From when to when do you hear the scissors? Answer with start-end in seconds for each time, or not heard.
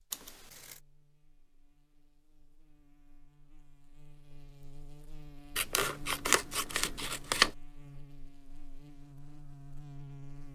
0.1-0.8, 5.5-7.5.